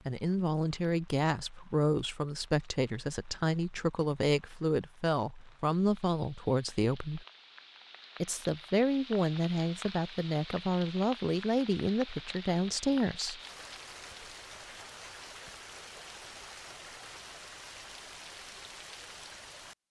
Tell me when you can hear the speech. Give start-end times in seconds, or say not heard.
0.1-7.2, 8.2-13.4.